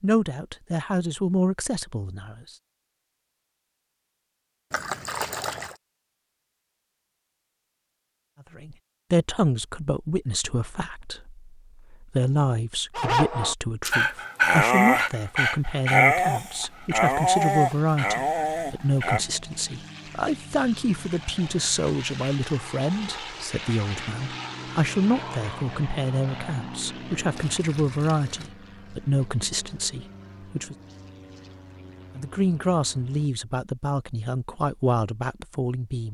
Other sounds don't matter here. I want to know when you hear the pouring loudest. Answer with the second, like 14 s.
5 s.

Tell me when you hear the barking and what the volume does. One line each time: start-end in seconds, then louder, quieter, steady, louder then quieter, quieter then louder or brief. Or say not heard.
12.9-19.2 louder then quieter.